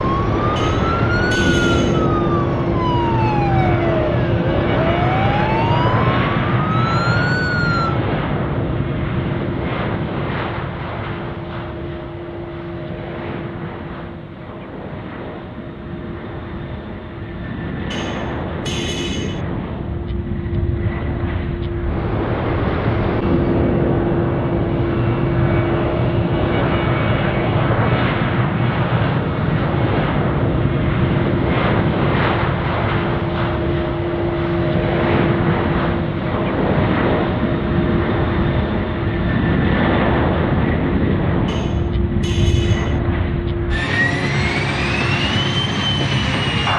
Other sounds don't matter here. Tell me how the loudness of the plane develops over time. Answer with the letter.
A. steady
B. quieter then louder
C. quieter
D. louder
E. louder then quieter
B.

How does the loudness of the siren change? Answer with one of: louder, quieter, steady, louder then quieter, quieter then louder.
steady.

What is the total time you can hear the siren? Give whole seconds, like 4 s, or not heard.
8 s.